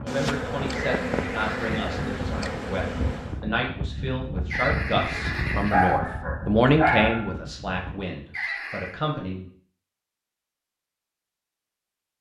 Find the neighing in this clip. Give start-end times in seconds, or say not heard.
0.7-2.1, 4.5-6.0, 8.3-8.9.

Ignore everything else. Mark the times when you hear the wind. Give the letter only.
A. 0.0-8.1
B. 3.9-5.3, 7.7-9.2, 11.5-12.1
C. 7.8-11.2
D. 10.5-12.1
A.